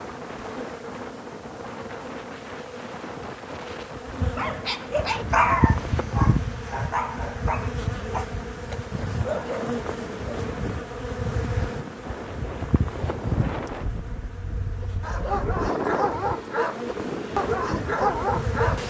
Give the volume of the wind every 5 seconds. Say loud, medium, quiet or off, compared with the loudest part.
medium, medium, medium, loud.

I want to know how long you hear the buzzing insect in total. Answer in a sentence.
The buzzing insect can be heard for 19 seconds in total.